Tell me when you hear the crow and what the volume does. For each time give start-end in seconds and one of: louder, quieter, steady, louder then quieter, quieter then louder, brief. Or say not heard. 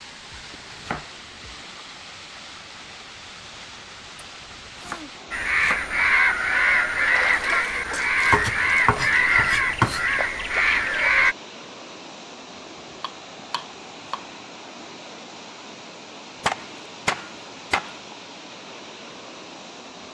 5.3-11.3 steady.